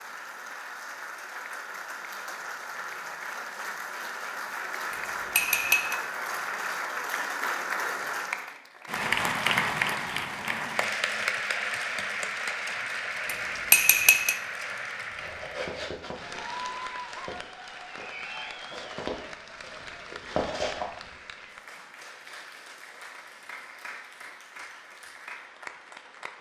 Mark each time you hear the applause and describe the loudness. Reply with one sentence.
You can hear the applause from 0.0 to 26.3 s, getting louder then quieter.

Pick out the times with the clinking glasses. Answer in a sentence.
The clinking glasses can be heard from 4.9 to 6.0 s and from 13.2 to 14.3 s.